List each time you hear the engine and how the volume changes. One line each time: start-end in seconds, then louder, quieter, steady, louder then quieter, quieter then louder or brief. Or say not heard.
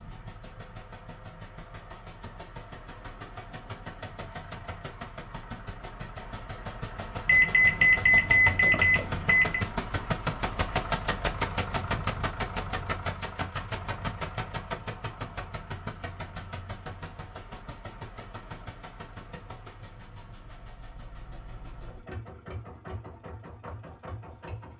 0.0-24.7 louder then quieter.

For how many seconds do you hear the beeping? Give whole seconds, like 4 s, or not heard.
2 s.